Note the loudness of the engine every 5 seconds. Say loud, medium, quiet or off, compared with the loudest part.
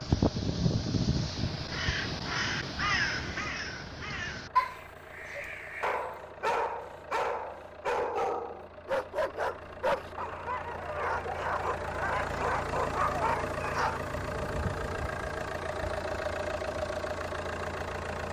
quiet, quiet, loud, loud.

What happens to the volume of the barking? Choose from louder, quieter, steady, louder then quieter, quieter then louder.
steady.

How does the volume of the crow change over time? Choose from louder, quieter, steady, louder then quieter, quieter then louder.
quieter.